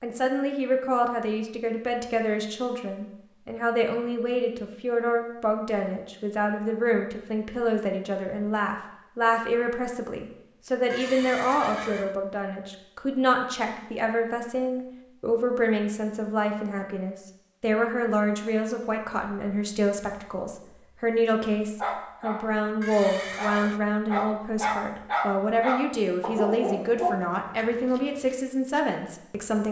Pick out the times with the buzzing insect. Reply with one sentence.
You can't hear the buzzing insect here.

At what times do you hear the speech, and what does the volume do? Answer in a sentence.
You can hear the speech from 0.0 to 29.6 s, at a steady volume.